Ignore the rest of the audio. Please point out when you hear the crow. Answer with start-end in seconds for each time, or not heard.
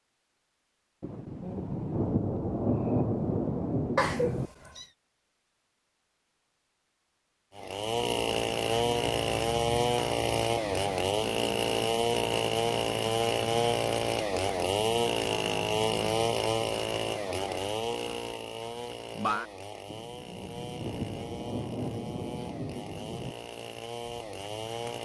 not heard.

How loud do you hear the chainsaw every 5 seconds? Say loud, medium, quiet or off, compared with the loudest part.
off, loud, loud, loud, quiet.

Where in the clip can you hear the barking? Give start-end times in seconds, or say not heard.
not heard.